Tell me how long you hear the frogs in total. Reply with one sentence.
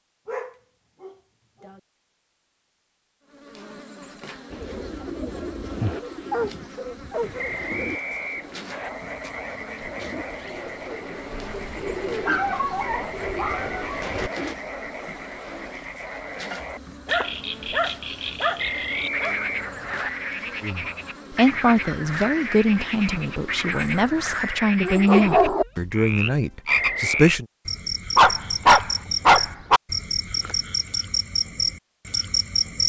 The frogs can be heard for 26 seconds in total.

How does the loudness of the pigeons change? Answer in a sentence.
The loudness of the pigeons goes down, then up.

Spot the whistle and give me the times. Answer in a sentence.
You can hear the whistle from 7.3 to 8.9 s, from 18.6 to 20.1 s and from 26.6 to 27.4 s.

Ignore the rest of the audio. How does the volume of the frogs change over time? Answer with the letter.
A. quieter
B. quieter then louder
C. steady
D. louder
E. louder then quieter
D.